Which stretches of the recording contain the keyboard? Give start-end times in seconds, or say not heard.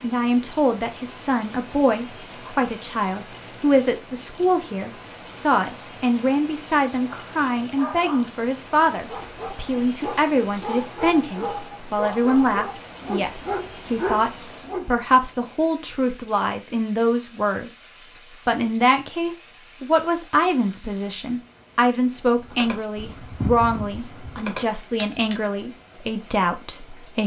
22.4-25.4.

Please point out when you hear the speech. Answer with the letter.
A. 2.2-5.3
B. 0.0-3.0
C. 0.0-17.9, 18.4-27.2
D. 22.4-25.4
C.